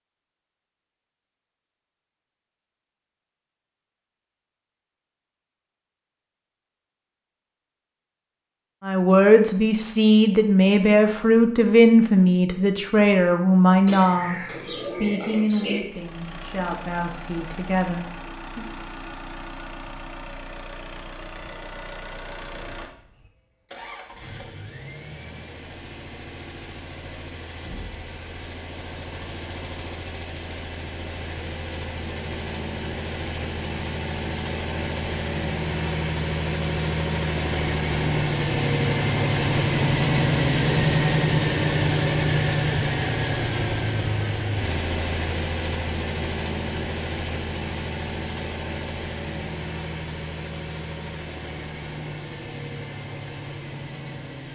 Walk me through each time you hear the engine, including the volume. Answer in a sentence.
The engine can be heard from 15.8 to 54.5 s, getting louder then quieter.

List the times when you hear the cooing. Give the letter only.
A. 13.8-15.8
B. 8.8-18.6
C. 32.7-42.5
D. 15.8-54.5
A.